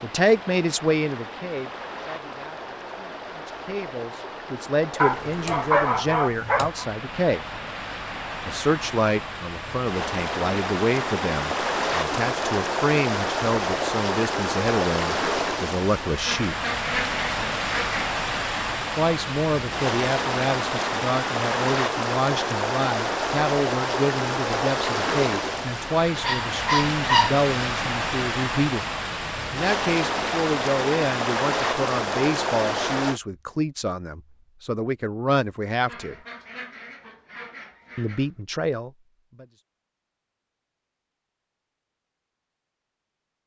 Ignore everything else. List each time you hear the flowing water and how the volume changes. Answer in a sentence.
The flowing water can be heard from 0.0 to 33.2 s, getting louder.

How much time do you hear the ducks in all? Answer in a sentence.
You can hear the ducks for 4 seconds altogether.